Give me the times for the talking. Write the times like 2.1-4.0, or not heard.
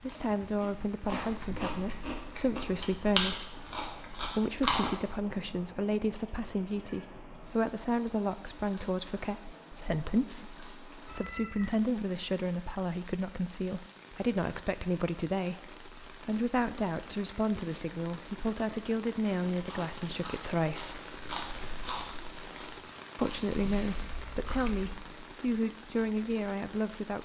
0.0-21.0, 23.1-27.1.